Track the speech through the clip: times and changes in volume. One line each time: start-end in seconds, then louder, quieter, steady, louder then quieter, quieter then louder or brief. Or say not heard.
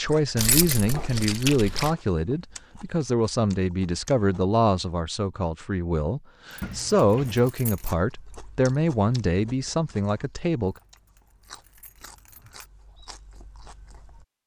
0.0-10.8 steady.